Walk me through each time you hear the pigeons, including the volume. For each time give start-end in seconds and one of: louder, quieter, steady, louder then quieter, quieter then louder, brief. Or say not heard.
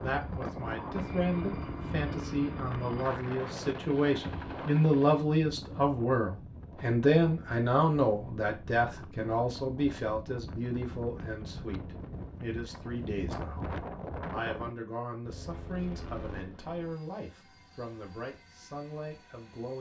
not heard.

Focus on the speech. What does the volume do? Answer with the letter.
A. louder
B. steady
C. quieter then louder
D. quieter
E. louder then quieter
E.